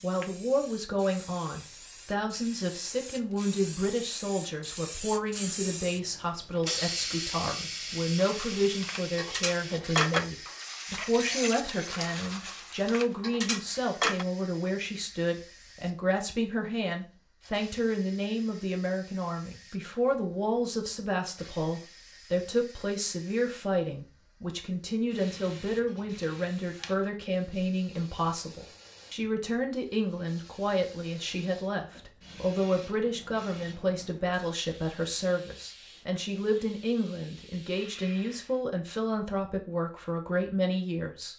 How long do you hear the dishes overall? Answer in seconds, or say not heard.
6 s.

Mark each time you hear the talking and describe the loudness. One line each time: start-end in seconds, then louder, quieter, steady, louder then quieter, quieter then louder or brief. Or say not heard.
0.0-41.3 steady.